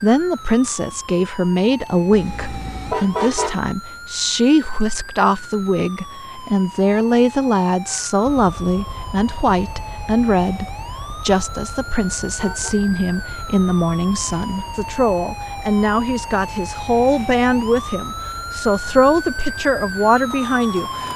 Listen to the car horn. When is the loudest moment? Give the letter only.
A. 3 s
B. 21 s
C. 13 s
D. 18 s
A.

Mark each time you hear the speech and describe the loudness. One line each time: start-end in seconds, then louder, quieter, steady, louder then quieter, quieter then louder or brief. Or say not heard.
0.0-21.1 steady.